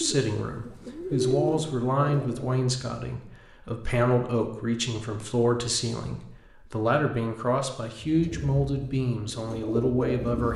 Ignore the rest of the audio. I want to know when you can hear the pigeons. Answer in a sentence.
You can hear the pigeons from 0.0 to 2.6 s and from 8.0 to 10.5 s.